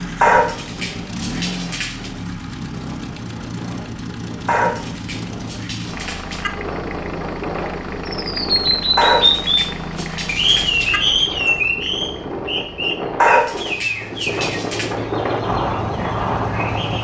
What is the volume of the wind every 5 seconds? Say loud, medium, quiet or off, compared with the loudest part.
quiet, medium, medium, loud.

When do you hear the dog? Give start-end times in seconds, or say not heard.
0.2-2.1, 4.5-6.5, 8.9-11.0, 13.2-14.9.